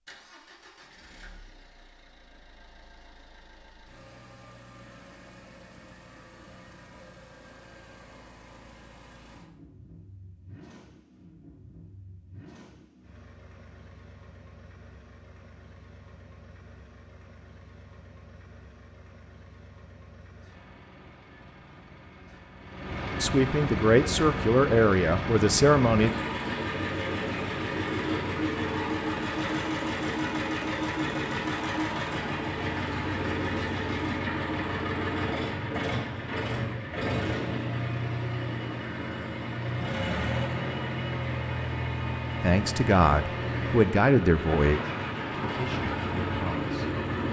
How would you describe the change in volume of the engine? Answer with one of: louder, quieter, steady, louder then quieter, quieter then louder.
louder.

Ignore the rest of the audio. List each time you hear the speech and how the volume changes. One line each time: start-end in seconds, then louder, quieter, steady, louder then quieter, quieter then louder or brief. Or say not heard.
23.2-26.1 brief
42.4-47.0 quieter.